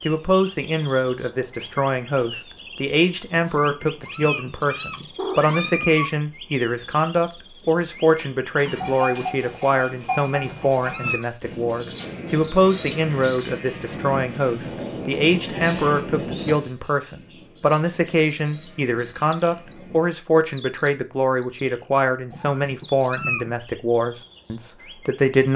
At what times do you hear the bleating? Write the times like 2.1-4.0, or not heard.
8.6-20.1.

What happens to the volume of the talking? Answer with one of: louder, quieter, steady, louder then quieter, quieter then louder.
steady.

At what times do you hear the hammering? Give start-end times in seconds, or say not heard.
not heard.